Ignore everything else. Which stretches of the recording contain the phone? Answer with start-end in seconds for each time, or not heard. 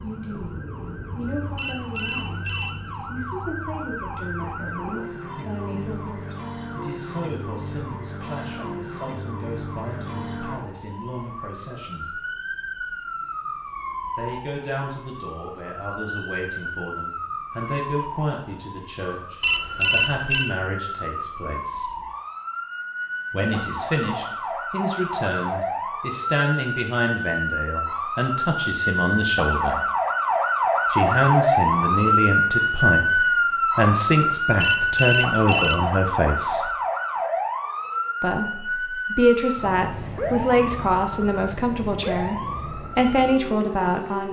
1.6-2.7, 19.4-20.5, 34.6-35.9.